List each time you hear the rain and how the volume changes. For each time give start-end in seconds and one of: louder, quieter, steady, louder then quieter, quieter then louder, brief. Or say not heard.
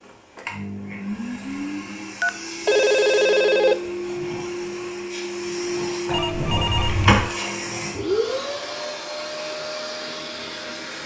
not heard.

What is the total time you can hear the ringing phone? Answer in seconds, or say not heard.
3 s.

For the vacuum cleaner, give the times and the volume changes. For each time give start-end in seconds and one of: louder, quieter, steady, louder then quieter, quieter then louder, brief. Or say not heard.
0.0-11.0 louder then quieter.